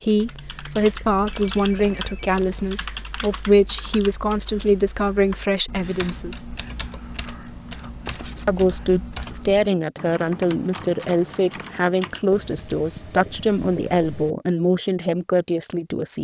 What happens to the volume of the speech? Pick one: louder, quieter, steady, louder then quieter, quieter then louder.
steady.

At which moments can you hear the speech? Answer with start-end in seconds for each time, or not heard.
0.0-6.5, 8.4-16.1.